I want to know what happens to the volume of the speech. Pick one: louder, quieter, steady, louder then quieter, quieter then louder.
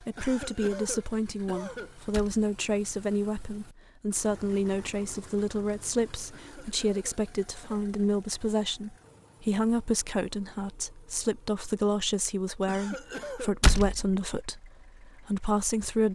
steady.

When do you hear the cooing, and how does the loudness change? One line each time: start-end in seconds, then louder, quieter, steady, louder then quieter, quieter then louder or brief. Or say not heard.
not heard.